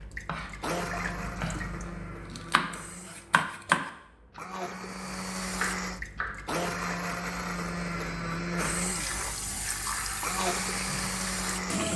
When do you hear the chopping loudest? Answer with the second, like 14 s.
4 s.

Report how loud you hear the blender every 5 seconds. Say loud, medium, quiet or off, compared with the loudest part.
medium, loud, loud.